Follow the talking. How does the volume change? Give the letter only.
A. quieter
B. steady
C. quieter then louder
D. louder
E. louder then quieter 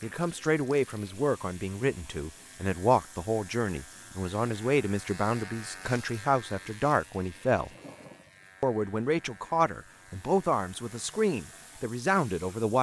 B.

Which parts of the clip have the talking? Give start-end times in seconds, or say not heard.
0.0-7.7, 8.6-12.7.